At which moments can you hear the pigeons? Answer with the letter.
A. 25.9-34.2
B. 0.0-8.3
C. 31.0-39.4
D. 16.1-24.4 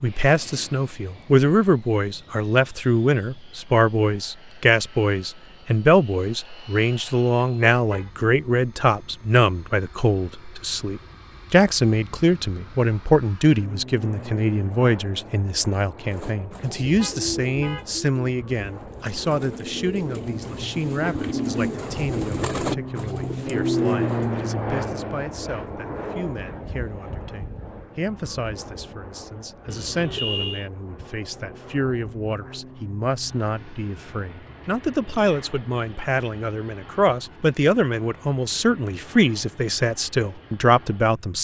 D.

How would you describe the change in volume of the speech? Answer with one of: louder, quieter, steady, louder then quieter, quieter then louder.
quieter then louder.